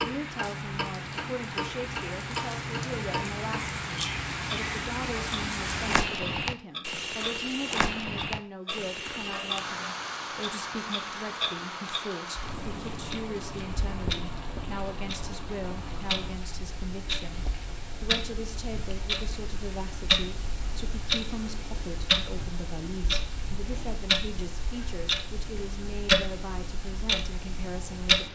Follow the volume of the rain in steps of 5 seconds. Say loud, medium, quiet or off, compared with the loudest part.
loud, loud, medium, quiet, quiet, quiet.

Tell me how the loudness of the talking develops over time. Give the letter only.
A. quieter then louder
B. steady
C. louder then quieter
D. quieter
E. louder
B.